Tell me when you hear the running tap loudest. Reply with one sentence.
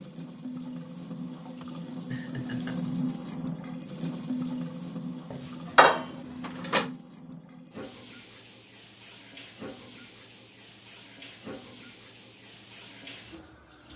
The volume of the running tap peaks at 3 seconds.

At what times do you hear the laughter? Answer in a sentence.
The laughter can be heard from 1.6 to 2.8 s.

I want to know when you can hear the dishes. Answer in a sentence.
The dishes can be heard from 5.3 to 6.8 s.